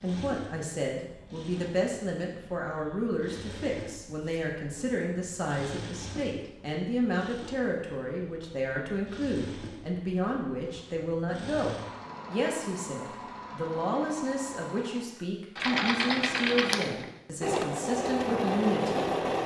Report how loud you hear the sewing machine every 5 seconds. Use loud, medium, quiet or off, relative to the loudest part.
quiet, quiet, quiet, loud.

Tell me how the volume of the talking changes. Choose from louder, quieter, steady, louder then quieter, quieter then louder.
steady.